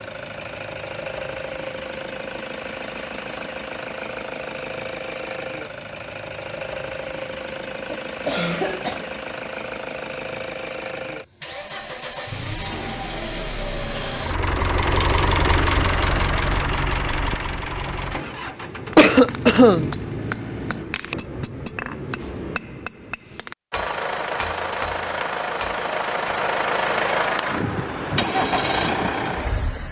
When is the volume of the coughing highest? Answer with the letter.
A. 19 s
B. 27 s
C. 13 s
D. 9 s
A.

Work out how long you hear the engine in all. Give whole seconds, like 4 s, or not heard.
27 s.